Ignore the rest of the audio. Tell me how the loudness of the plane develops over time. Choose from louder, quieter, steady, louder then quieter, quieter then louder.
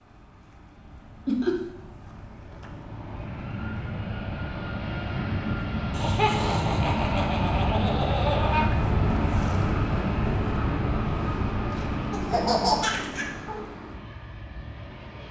louder then quieter.